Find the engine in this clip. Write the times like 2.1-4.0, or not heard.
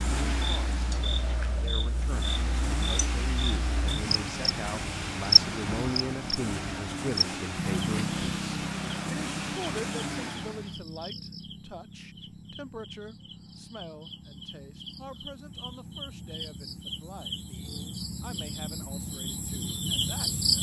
0.0-10.8.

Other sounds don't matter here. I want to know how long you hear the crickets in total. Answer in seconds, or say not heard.
20 s.